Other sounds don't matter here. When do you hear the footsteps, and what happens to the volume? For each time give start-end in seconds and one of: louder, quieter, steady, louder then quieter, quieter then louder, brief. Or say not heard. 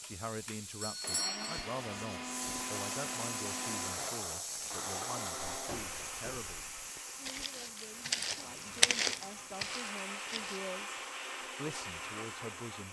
5.5-10.6 louder then quieter.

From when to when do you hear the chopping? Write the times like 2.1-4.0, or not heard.
not heard.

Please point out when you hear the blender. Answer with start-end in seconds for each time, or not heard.
0.0-12.8.